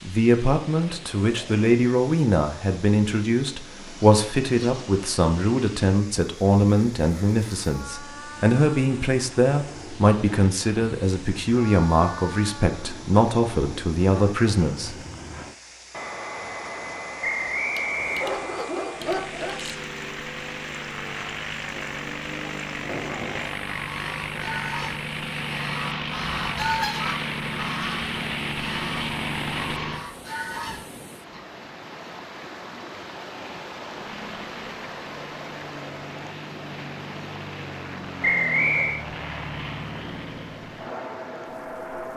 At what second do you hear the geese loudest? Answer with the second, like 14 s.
27 s.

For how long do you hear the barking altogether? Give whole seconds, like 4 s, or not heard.
2 s.